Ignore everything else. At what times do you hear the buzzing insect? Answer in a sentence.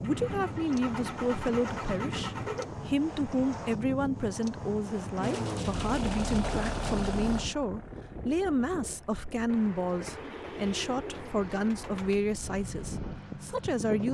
The buzzing insect can't be heard in this clip.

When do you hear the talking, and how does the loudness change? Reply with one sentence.
You can hear the talking from 0.0 to 14.0 s, at a steady volume.